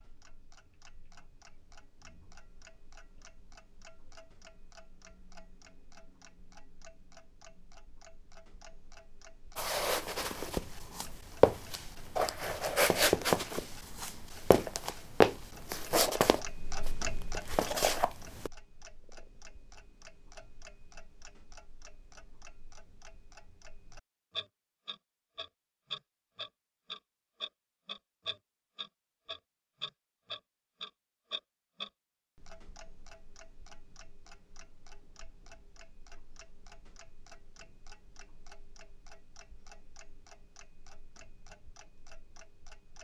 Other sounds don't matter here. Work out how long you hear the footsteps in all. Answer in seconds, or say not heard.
9 s.